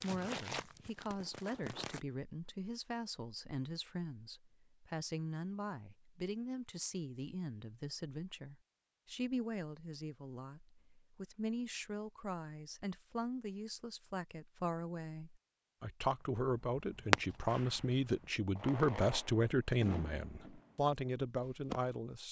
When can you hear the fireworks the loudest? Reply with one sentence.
The loudest moment of the fireworks is at 17 seconds.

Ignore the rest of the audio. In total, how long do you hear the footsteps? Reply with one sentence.
The footsteps can't be heard in this clip.